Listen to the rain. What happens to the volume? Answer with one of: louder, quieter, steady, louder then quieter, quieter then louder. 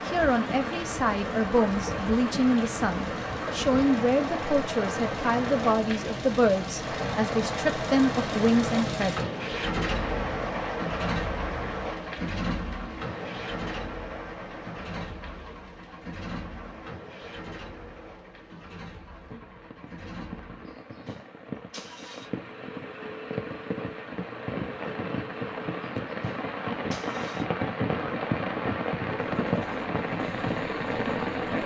quieter then louder.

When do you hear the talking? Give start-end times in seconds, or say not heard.
0.1-9.2.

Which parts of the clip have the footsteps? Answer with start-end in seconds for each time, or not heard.
not heard.